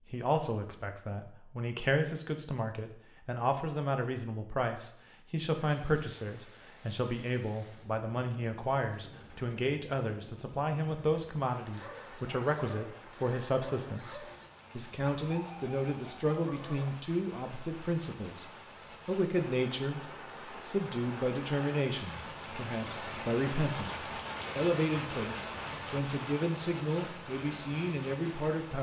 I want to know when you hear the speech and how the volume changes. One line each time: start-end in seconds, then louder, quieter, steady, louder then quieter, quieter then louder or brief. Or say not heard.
0.1-28.7 steady.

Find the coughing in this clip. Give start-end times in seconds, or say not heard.
not heard.